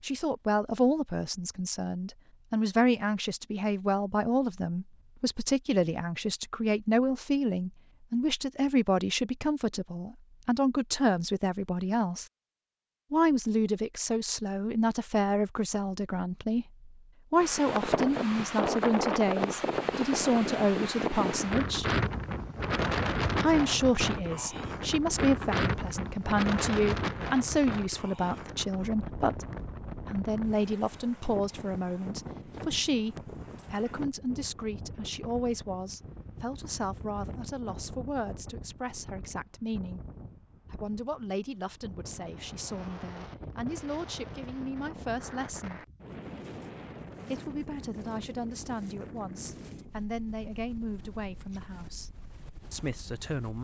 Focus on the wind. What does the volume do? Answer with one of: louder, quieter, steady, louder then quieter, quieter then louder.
quieter.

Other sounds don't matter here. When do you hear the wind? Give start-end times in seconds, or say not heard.
17.4-53.6.